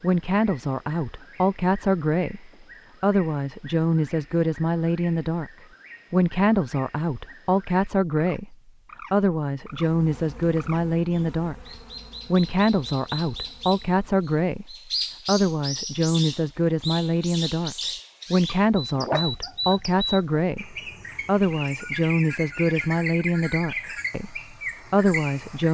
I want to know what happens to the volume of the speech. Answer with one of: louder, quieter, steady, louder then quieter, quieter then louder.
steady.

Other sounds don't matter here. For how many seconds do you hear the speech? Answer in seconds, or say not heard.
24 s.